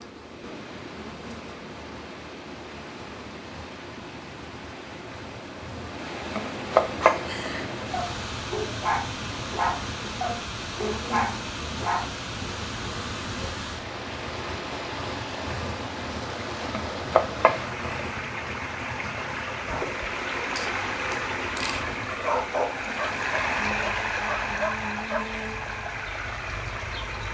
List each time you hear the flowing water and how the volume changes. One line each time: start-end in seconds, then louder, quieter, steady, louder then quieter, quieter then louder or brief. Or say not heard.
0.0-27.2 louder.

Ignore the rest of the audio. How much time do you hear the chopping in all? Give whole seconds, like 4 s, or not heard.
2 s.